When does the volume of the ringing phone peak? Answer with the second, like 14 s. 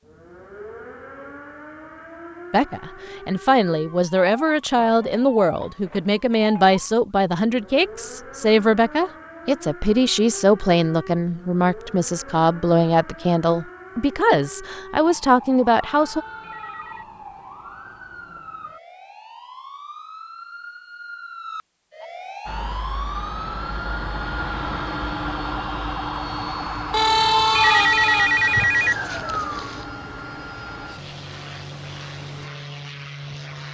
28 s.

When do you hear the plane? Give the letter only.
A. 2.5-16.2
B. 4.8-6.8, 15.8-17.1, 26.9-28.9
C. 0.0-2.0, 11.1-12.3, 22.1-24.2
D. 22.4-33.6
D.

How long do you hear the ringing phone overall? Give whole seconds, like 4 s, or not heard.
5 s.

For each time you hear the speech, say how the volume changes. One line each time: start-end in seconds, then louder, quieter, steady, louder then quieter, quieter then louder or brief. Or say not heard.
2.5-16.2 steady.